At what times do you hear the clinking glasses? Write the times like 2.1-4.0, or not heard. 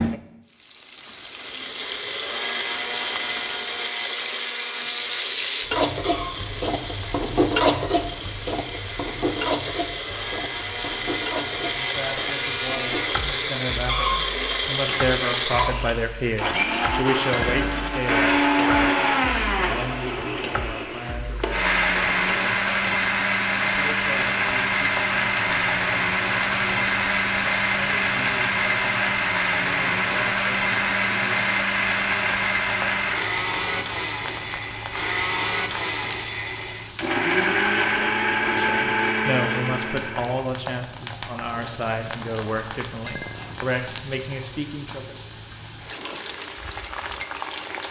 17.3-17.9, 43.0-43.6.